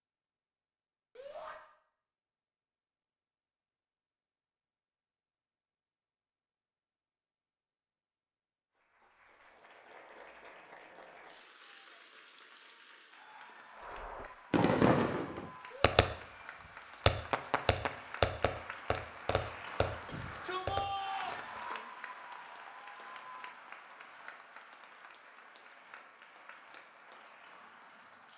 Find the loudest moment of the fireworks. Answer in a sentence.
The loudest moment of the fireworks is at 15 seconds.